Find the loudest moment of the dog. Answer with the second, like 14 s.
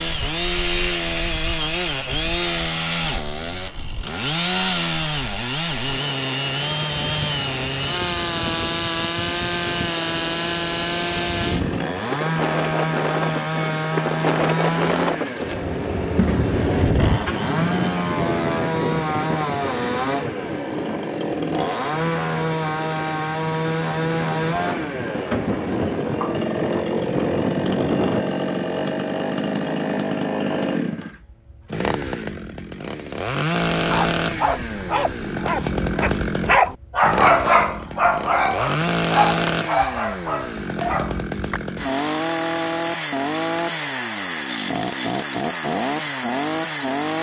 37 s.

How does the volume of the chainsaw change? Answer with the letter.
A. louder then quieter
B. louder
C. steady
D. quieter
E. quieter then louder
C.